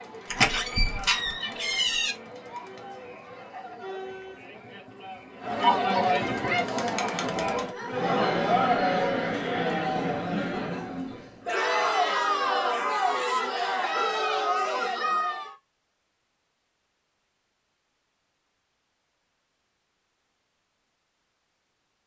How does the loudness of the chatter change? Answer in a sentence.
The loudness of the chatter goes up.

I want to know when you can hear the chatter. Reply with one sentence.
The chatter can be heard from 0.0 to 15.6 s.